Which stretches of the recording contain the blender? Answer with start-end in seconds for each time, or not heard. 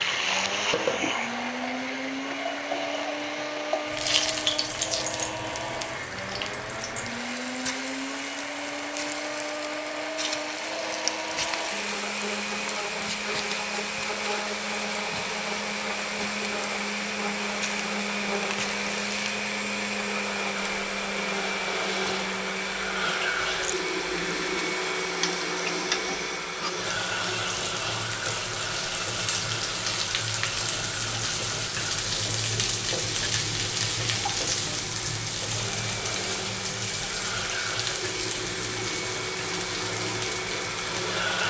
0.0-41.4.